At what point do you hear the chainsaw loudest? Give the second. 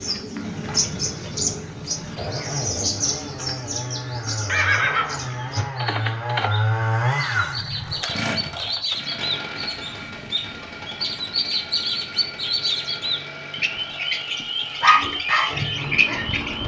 7 s.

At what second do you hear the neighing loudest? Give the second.
5 s.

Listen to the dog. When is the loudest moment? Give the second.
15 s.